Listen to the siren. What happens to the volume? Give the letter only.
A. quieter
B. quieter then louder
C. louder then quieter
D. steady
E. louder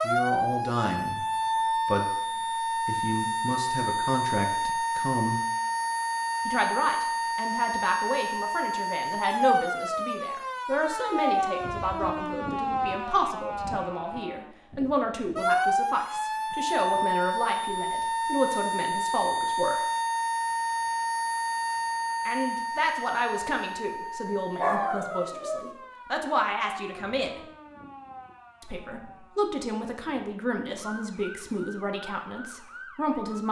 A.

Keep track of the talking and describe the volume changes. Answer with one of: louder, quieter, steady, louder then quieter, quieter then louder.
steady.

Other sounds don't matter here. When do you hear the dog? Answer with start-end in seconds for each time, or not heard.
24.6-25.7.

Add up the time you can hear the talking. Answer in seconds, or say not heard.
29 s.